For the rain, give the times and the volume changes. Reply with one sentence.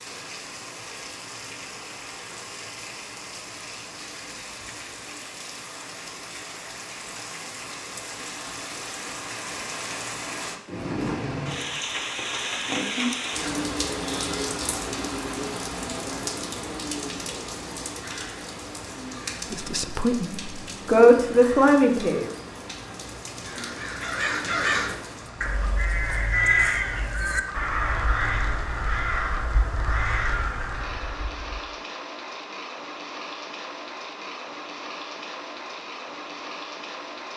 You can hear the rain from 0.0 to 37.3 s, getting louder then quieter.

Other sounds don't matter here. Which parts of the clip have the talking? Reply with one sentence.
The talking can be heard from 19.5 to 22.3 s.